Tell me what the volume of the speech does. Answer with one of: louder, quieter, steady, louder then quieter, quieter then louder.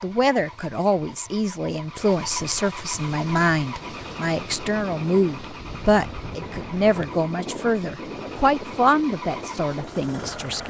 steady.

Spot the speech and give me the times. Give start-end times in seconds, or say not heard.
0.0-10.6.